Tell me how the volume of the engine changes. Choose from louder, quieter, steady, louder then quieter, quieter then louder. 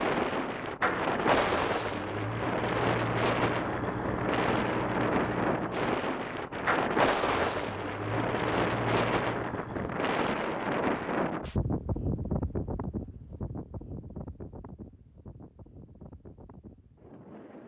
steady.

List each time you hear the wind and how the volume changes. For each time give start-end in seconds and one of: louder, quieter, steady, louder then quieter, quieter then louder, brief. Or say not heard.
0.0-17.6 quieter.